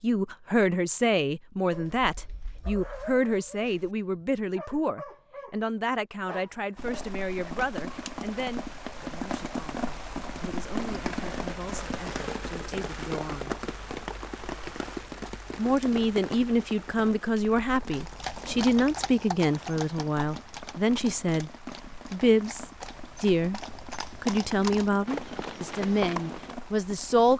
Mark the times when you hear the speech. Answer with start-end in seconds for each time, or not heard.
0.0-13.6, 15.6-21.5, 22.1-23.6, 24.2-27.3.